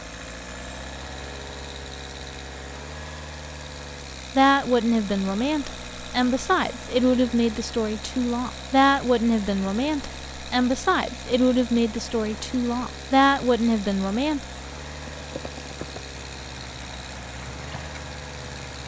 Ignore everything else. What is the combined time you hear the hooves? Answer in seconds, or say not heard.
4 s.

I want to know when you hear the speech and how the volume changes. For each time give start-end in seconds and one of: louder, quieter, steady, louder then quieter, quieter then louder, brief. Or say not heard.
4.3-14.4 steady.